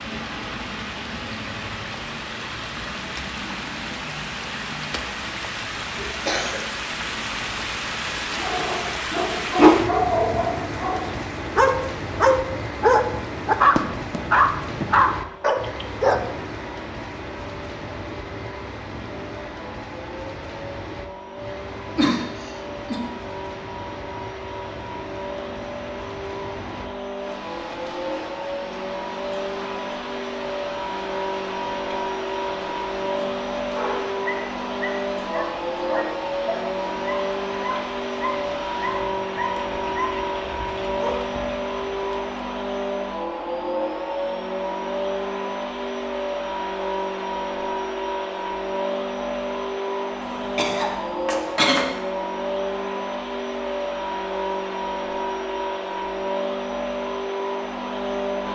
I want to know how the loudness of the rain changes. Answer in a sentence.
The volume of the rain goes down.